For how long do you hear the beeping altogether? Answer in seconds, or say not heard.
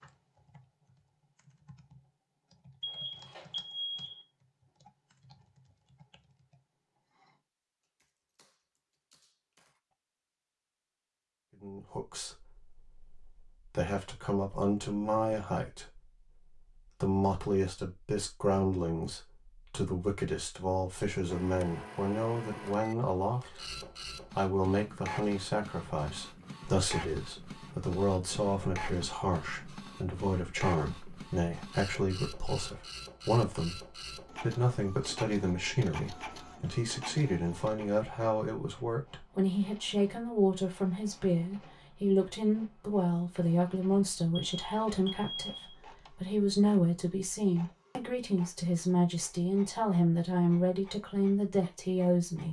3 s.